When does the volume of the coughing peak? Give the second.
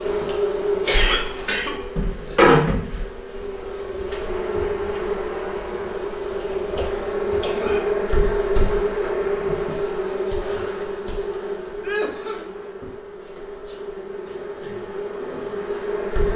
1 s.